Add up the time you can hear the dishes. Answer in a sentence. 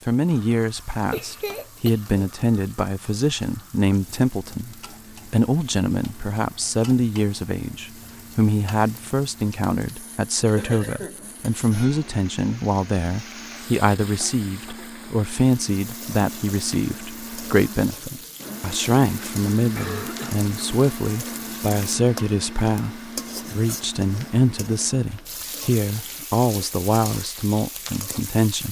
You can't hear the dishes here.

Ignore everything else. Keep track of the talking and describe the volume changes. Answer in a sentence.
The loudness of the talking stays about the same.